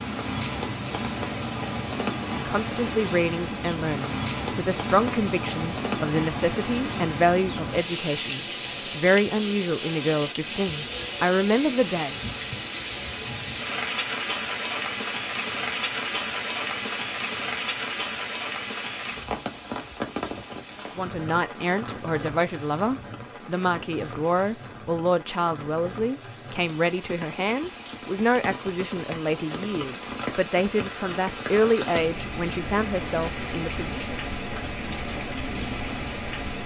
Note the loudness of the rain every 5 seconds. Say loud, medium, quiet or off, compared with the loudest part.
loud, loud, loud, loud, medium, medium, loud, loud.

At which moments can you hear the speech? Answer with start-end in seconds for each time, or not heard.
2.5-12.2, 20.9-34.2.